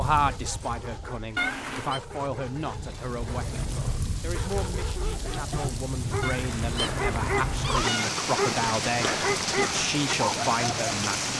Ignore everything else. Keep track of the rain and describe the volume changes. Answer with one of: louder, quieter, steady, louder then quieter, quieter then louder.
louder.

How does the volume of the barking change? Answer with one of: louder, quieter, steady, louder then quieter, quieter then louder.
louder.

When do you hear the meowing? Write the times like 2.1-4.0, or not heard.
1.4-2.0, 6.2-8.1.